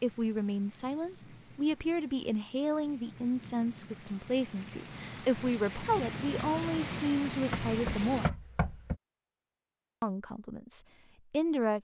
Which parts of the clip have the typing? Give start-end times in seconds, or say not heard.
not heard.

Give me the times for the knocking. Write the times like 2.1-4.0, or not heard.
7.5-8.9.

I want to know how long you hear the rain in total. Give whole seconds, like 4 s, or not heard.
8 s.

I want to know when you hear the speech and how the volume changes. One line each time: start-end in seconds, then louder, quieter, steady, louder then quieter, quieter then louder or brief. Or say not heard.
0.0-8.3 steady
10.0-11.7 brief.